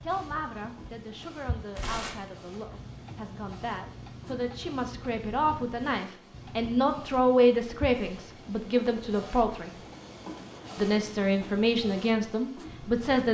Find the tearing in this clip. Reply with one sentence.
The tearing can be heard from 1.8 to 2.3 s.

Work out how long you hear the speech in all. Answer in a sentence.
You can hear the speech for 12 seconds altogether.